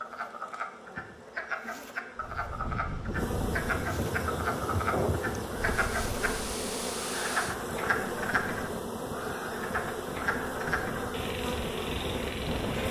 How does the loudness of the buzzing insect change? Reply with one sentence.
The loudness of the buzzing insect goes up.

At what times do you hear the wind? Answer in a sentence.
The wind can be heard from 2.1 to 12.8 s.